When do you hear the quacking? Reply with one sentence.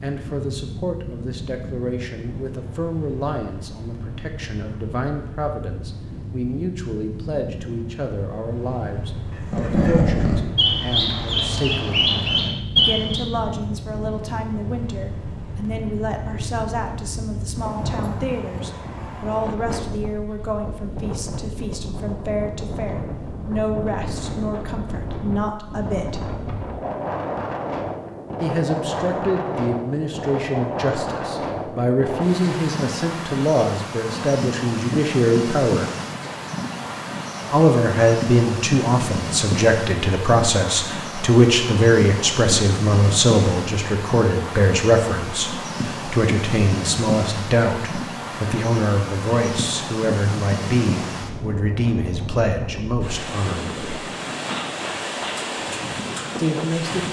You can hear the quacking from 9.5 to 13.2 s.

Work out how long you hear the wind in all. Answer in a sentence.
You can hear the wind for 57 seconds altogether.